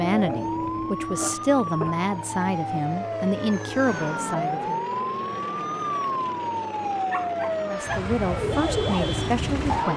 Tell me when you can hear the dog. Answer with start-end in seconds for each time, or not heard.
7.1-8.1.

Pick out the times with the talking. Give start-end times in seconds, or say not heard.
0.0-4.8, 7.6-9.9.